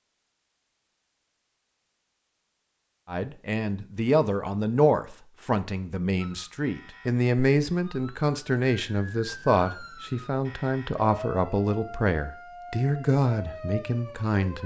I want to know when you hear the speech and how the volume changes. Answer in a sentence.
You can hear the speech from 3.0 to 14.6 s, at a steady volume.